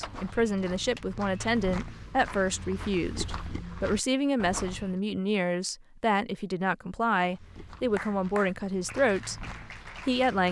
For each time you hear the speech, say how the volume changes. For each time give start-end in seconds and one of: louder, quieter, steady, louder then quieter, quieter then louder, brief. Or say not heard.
0.0-10.4 steady.